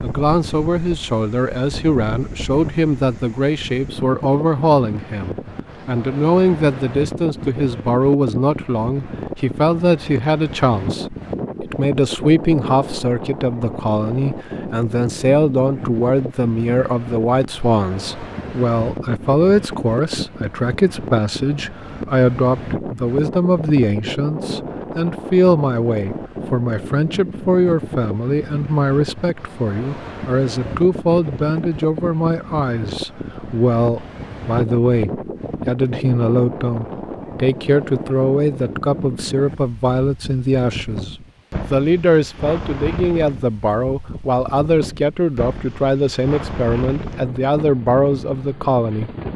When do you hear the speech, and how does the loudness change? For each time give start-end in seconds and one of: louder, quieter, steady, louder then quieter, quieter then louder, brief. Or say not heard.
0.0-49.1 steady.